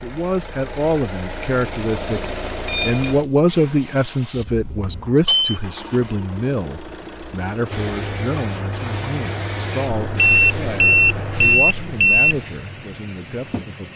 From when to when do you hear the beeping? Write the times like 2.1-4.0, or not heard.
2.6-3.1, 4.8-5.6, 9.9-12.4.